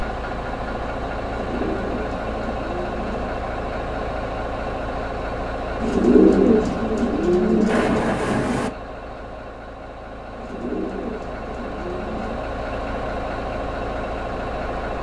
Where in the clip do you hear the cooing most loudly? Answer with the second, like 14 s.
6 s.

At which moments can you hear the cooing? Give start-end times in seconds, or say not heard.
1.2-3.3, 5.8-8.2, 10.3-12.4.